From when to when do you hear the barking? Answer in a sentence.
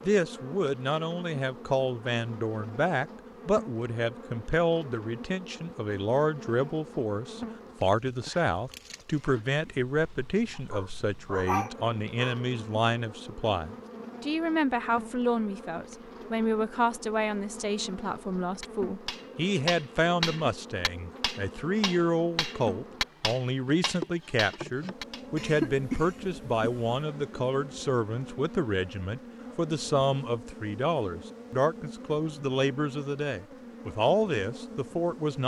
The barking can be heard from 10.6 to 12.4 s.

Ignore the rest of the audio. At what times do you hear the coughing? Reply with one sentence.
The coughing can be heard from 9.1 to 9.6 s and from 25.4 to 26.9 s.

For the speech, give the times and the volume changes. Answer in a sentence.
You can hear the speech from 0.0 to 35.4 s, at a steady volume.